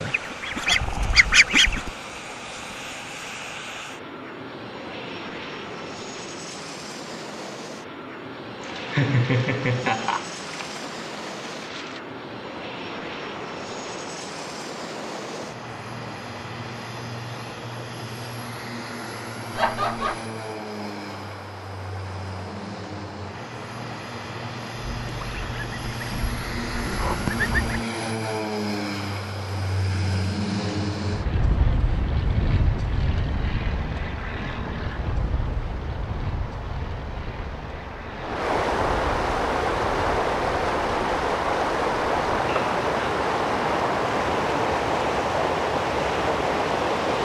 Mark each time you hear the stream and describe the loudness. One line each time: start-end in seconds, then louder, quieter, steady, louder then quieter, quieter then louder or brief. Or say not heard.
8.6-47.1 louder.